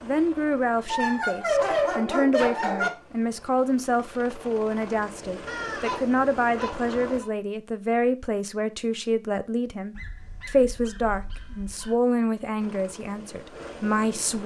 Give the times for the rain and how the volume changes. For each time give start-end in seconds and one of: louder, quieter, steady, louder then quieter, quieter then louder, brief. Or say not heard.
not heard.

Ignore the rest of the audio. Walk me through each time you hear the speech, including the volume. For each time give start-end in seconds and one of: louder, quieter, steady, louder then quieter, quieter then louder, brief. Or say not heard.
0.0-14.4 steady.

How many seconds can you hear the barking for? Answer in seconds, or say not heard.
6 s.